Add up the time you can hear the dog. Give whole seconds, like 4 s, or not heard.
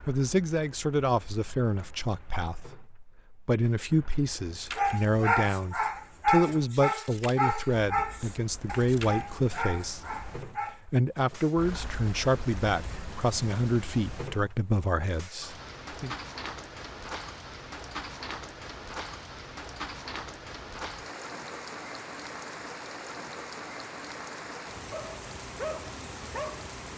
8 s.